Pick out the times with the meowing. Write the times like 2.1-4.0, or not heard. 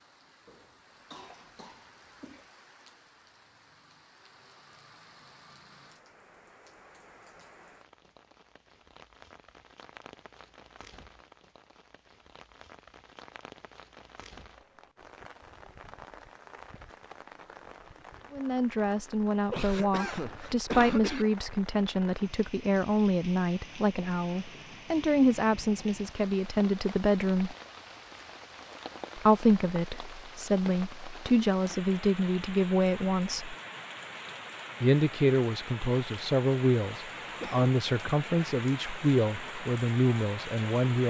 not heard.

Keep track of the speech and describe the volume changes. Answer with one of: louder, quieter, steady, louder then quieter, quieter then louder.
steady.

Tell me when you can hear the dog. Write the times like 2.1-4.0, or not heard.
not heard.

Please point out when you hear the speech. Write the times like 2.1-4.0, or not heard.
18.3-27.6, 29.1-33.5, 34.8-41.0.